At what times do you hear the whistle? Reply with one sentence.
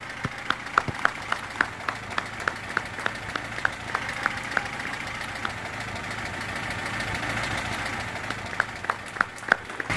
You can hear the whistle from 0.2 to 0.9 s.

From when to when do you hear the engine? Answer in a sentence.
The engine can be heard from 0.0 to 9.9 s.